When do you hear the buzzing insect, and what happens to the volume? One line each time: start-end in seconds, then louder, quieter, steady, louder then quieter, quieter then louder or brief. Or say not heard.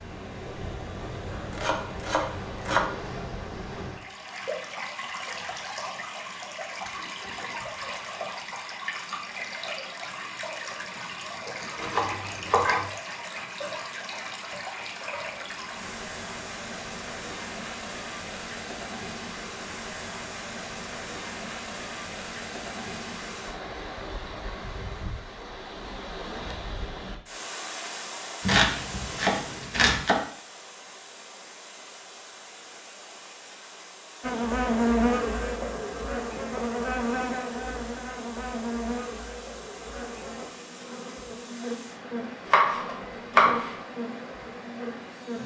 34.2-45.4 quieter.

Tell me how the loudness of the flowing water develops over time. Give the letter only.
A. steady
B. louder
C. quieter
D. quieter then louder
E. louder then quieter
C.